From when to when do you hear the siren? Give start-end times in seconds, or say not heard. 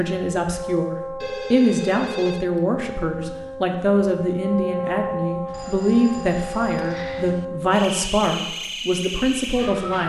0.0-10.0.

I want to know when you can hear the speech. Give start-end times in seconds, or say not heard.
0.0-10.0.